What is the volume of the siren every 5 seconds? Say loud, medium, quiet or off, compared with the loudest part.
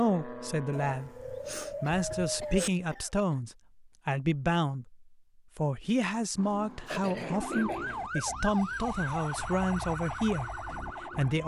off, loud, loud.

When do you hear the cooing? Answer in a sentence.
You can hear the cooing from 0.7 to 2.7 s and from 6.3 to 8.1 s.